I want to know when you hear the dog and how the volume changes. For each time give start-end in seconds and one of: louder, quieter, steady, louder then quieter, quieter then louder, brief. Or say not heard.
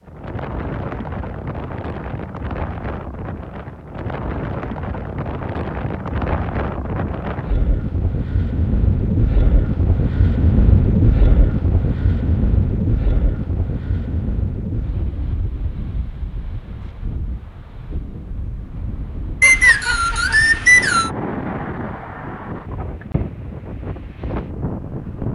not heard.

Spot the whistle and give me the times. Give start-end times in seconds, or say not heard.
19.4-21.1.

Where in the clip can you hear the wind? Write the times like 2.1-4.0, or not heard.
0.0-25.2.